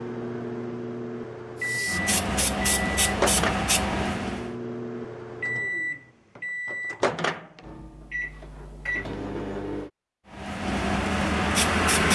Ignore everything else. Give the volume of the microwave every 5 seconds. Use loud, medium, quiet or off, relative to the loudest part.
loud, loud, off.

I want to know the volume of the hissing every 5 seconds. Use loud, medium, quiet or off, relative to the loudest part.
loud, off, loud.